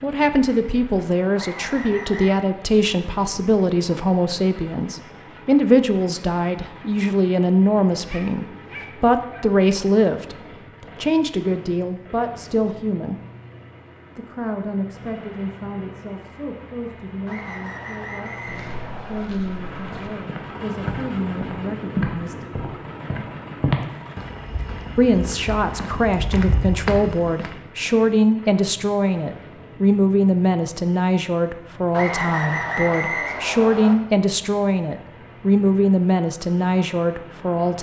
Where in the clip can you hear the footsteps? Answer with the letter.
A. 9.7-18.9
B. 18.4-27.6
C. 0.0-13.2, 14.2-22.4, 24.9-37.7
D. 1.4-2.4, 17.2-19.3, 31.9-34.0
B.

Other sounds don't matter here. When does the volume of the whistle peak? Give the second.
33 s.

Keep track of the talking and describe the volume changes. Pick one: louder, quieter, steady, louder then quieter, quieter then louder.
quieter then louder.